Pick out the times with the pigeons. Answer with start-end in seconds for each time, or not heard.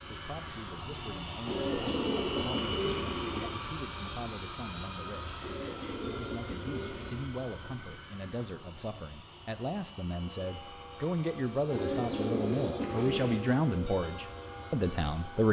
1.4-3.5, 5.4-7.3, 11.7-13.4.